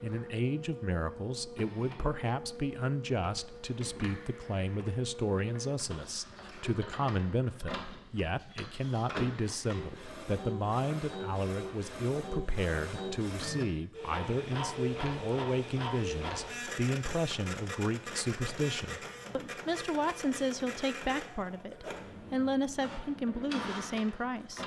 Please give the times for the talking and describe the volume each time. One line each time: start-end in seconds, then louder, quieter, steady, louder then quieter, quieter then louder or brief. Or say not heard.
0.0-24.6 steady.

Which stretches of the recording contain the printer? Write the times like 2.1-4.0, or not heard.
0.0-24.6.